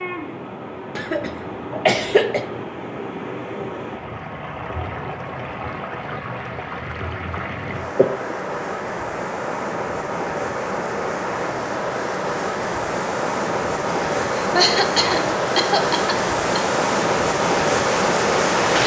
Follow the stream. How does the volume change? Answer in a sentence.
The volume of the stream goes up.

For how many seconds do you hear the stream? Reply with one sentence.
The stream can be heard for 19 seconds in total.